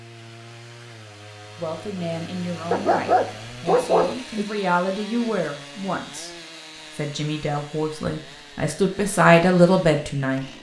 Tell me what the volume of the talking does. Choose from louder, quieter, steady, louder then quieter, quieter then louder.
louder.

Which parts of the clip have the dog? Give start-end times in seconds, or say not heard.
2.7-4.5.